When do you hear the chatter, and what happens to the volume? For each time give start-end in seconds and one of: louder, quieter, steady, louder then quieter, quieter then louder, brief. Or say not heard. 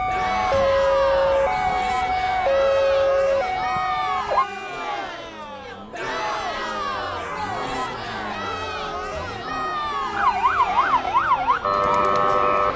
0.1-12.7 steady.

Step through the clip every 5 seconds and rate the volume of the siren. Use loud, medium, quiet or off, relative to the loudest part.
loud, off, loud.